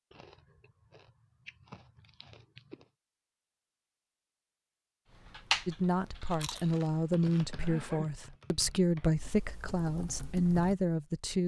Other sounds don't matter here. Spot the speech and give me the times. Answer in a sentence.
The speech can be heard from 5.7 to 11.4 s.